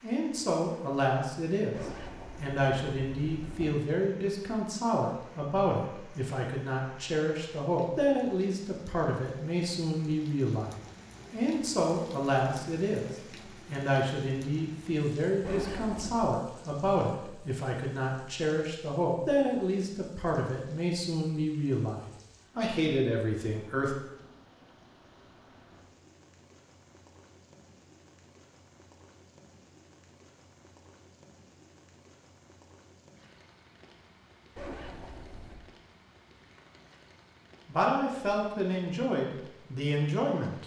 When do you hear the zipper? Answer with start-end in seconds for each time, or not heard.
1.7-3.6, 15.4-16.3, 34.5-35.6.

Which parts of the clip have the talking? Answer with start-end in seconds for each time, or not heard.
0.0-23.9, 37.6-40.6.